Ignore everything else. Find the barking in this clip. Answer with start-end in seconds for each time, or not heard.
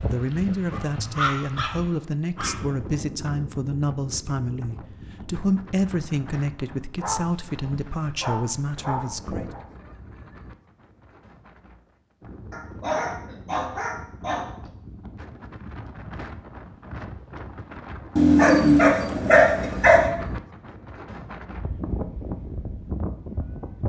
0.7-2.5, 7.0-9.6, 12.5-14.5, 18.1-20.1.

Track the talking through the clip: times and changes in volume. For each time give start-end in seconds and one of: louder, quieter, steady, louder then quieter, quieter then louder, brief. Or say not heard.
0.0-9.5 steady.